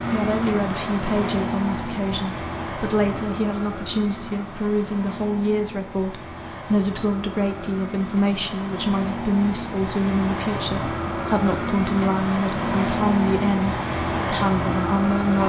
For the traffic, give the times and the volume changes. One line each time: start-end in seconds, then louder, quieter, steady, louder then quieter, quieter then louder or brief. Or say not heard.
0.0-15.4 quieter then louder.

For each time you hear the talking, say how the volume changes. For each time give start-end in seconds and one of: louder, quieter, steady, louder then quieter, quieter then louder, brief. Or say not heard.
0.0-15.4 steady.